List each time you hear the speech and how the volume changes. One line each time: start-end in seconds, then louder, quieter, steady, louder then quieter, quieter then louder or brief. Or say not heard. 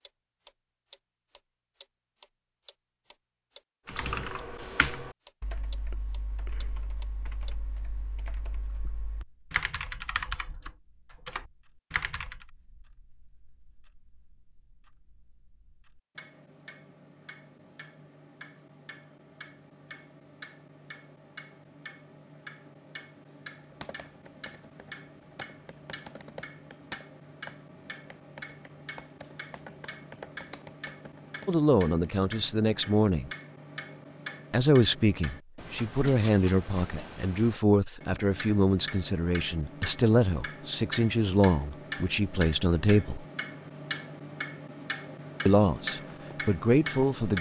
31.4-33.3 brief
34.5-43.2 steady
45.5-47.3 brief.